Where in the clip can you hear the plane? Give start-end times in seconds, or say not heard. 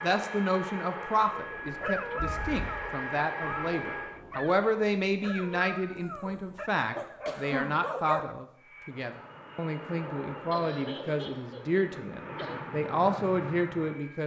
0.0-4.2, 8.6-14.2.